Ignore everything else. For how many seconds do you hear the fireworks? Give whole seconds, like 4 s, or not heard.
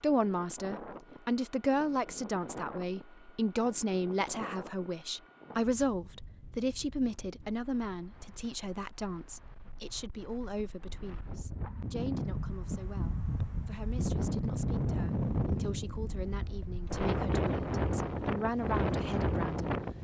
not heard.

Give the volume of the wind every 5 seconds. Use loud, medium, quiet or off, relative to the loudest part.
quiet, quiet, loud, loud.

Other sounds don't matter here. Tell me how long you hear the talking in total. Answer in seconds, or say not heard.
20 s.